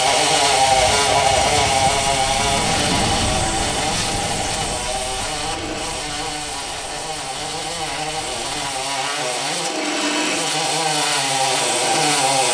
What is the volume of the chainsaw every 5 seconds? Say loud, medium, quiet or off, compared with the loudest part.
loud, medium, loud.